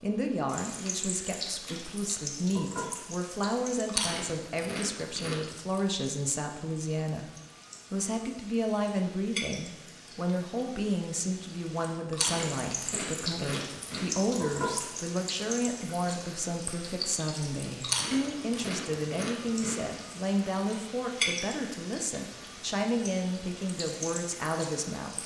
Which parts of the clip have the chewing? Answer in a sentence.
You can hear the chewing from 3.9 to 5.5 s, from 12.1 to 14.3 s and from 17.8 to 19.9 s.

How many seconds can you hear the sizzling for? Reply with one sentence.
You can hear the sizzling for 25 seconds altogether.